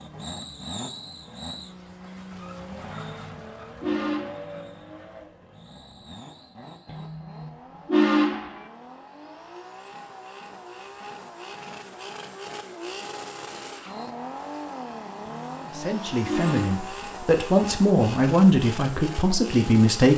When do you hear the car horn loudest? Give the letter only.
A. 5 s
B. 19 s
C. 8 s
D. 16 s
C.